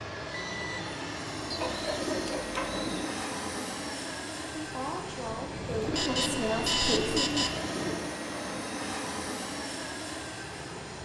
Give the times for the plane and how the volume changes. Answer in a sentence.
The plane can be heard from 0.0 to 10.9 s, at a steady volume.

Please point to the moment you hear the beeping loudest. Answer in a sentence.
The volume of the beeping peaks at 7 seconds.